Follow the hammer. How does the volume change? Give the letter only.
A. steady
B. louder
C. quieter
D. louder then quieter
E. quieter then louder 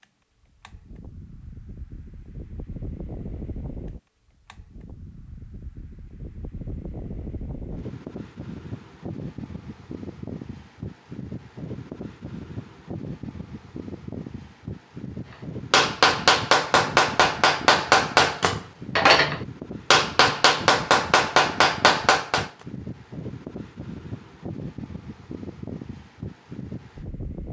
A.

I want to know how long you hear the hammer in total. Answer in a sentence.
You can hear the hammer for 7 seconds altogether.